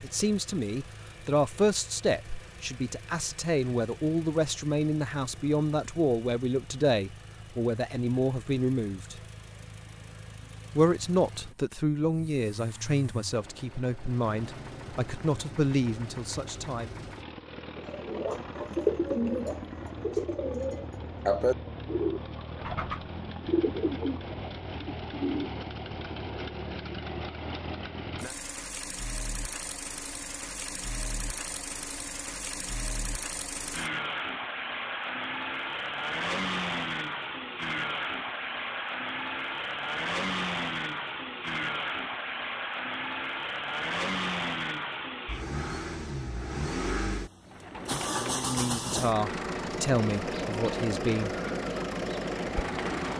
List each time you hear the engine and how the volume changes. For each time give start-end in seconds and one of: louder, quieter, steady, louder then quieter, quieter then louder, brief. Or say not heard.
0.0-53.1 louder.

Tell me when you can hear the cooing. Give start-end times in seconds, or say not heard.
17.8-25.5, 47.5-53.1.